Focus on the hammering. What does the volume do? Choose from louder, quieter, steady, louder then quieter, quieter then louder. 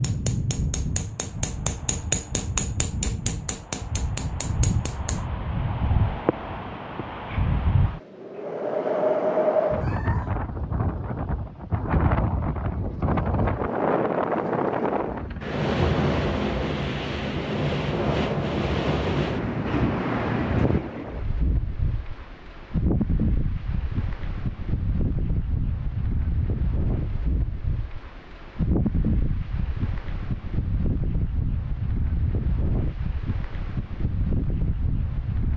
louder then quieter.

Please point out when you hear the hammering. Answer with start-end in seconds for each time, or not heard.
0.0-5.2.